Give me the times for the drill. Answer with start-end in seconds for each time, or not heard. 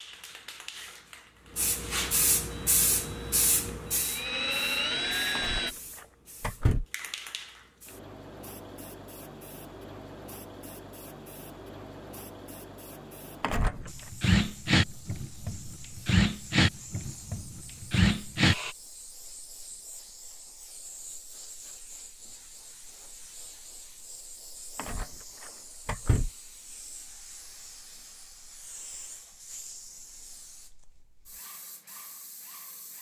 2.5-5.8, 13.6-18.8.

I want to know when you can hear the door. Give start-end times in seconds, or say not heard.
5.3-6.8, 13.4-13.9, 24.8-26.3.